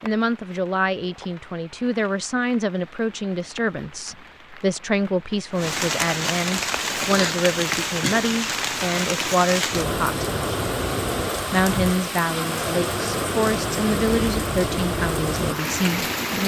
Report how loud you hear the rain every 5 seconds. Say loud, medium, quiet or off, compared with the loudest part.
quiet, loud, loud, loud.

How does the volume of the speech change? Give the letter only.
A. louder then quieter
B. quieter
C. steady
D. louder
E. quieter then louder
C.